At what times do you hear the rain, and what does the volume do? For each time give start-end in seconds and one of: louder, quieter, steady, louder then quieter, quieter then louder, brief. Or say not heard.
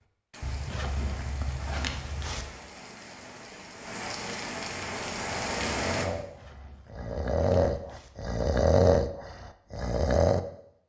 0.0-6.1 louder.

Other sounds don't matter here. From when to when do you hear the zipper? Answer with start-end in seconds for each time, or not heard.
0.4-2.5, 6.2-8.1.